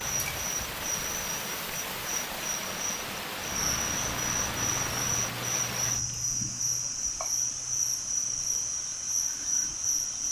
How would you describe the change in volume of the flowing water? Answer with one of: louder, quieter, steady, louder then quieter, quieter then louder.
steady.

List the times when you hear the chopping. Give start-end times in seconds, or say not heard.
not heard.